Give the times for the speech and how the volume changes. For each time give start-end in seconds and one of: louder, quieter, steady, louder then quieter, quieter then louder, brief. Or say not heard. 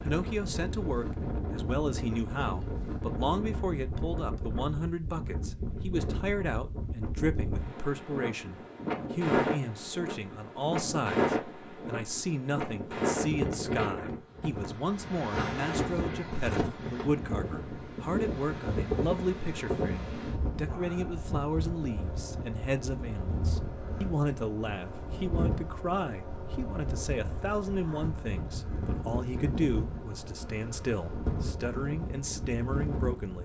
0.0-33.4 steady.